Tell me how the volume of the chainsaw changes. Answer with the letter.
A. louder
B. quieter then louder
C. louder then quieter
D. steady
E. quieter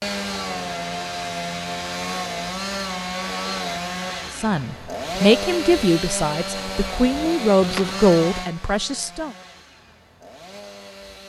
E.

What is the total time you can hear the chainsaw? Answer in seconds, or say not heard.
11 s.